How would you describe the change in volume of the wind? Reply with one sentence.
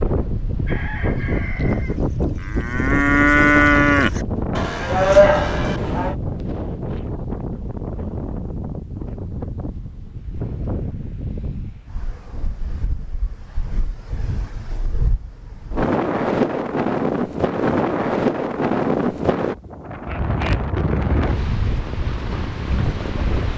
The volume of the wind goes down, then up.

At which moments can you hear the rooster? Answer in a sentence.
You can hear the rooster from 0.7 to 2.0 s.